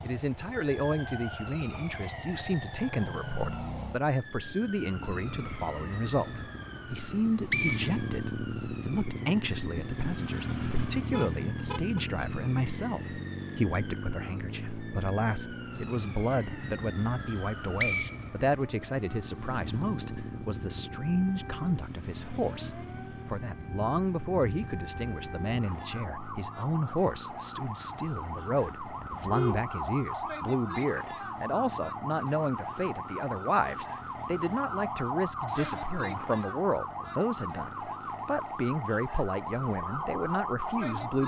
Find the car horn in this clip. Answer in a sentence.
The car horn can be heard from 11.1 to 12.0 s and from 29.1 to 29.7 s.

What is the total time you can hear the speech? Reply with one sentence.
The speech can be heard for 41 seconds in total.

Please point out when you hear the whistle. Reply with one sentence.
You can hear the whistle from 7.2 to 8.6 s, from 17.2 to 18.9 s and from 35.5 to 36.0 s.